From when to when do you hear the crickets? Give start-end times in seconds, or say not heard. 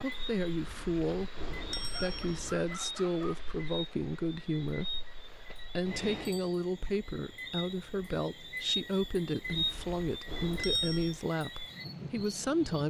0.0-12.8.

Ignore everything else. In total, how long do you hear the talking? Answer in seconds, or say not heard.
12 s.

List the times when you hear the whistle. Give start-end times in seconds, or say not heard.
not heard.